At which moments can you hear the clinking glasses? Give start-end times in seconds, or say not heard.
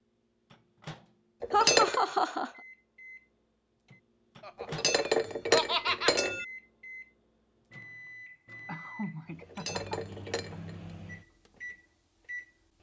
1.4-2.0, 4.6-6.5, 9.4-10.8.